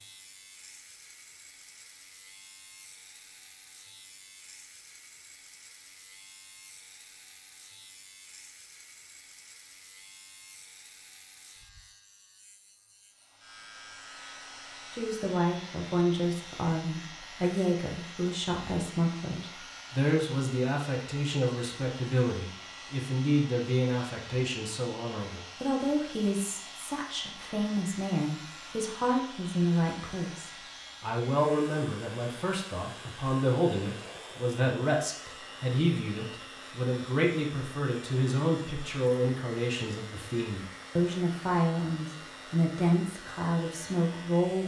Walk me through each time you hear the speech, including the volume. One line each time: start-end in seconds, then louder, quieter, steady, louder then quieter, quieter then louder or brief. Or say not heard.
14.9-44.6 steady.